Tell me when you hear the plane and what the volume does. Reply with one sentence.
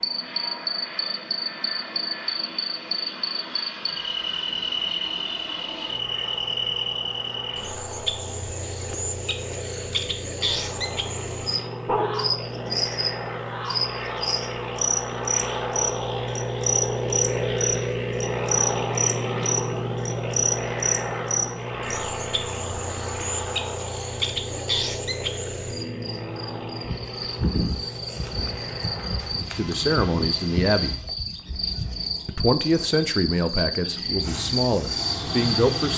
The plane can be heard from 0.0 to 31.1 s, getting louder then quieter; and briefly from 34.2 to 35.9 s.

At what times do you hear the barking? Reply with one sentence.
You can hear the barking from 11.8 to 12.8 s.